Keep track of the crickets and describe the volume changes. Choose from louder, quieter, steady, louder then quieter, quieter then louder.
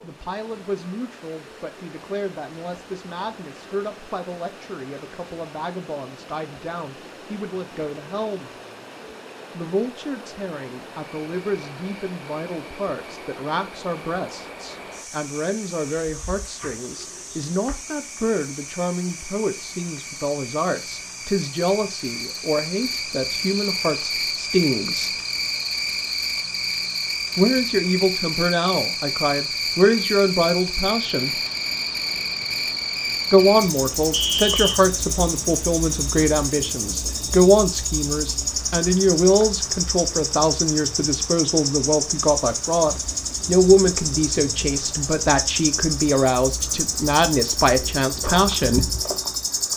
louder.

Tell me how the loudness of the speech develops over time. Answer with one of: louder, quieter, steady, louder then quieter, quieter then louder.
louder.